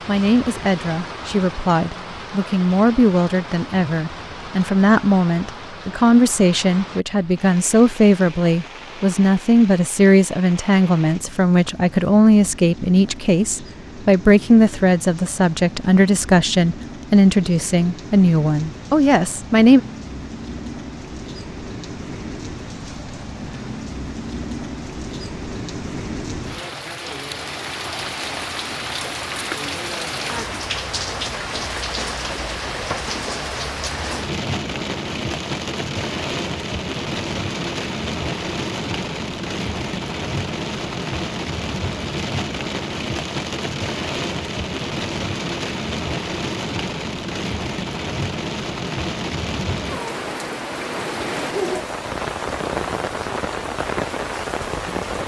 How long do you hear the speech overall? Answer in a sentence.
You can hear the speech for 20 seconds altogether.